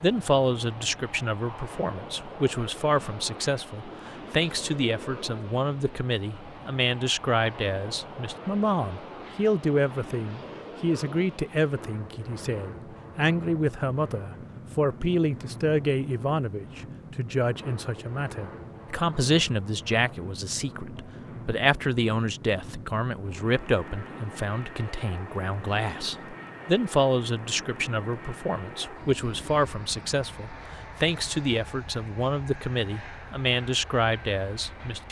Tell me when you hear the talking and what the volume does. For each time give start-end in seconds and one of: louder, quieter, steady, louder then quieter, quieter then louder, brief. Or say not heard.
0.0-35.0 steady.